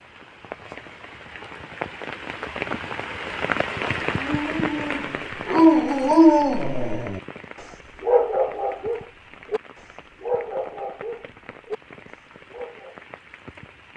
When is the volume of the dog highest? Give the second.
6 s.